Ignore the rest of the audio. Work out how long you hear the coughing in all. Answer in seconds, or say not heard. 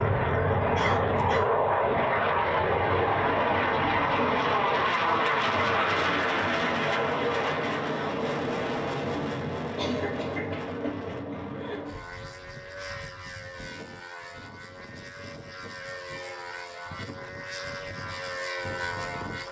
3 s.